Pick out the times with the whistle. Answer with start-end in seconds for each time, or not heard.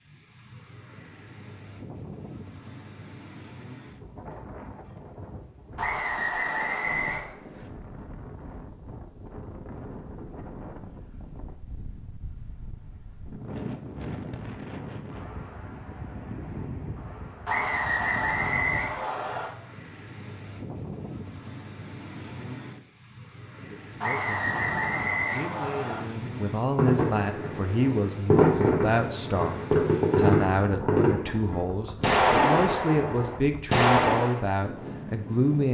5.8-7.2, 17.4-19.5, 24.0-26.0.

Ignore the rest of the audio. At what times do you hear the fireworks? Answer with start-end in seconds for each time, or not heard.
26.8-34.4.